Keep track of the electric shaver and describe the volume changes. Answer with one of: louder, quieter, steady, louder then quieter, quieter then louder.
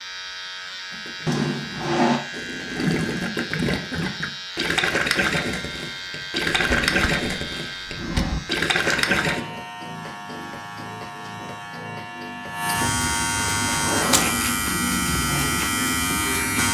louder.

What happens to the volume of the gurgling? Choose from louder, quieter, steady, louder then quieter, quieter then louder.
louder.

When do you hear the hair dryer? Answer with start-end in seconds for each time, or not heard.
not heard.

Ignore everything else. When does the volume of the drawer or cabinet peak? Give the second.
2 s.